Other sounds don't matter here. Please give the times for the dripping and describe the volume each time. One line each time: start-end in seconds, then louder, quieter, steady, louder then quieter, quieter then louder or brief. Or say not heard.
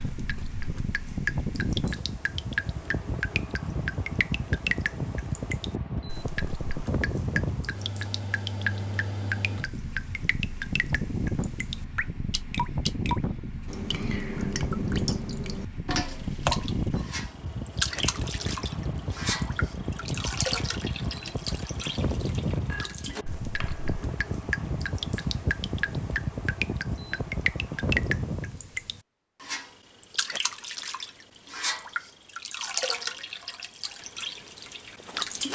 0.0-35.4 steady.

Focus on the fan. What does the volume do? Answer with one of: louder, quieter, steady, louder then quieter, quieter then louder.
steady.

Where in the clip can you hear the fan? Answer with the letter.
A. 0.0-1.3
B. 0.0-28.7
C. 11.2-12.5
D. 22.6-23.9
B.